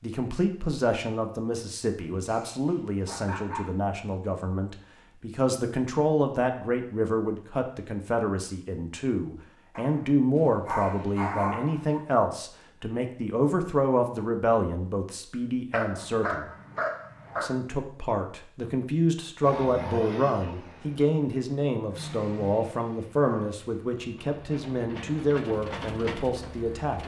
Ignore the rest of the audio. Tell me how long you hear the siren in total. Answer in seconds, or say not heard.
not heard.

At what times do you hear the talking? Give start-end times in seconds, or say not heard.
0.0-16.5, 17.4-27.0.